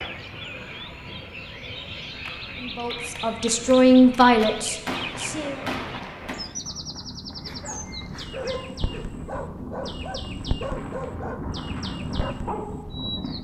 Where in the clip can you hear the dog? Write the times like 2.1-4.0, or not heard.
7.5-13.3.